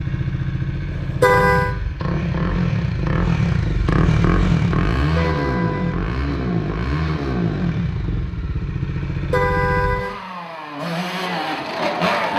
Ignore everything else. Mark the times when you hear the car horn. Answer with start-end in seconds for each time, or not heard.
1.0-1.8, 5.0-6.0, 9.1-10.1.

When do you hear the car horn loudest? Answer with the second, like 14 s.
1 s.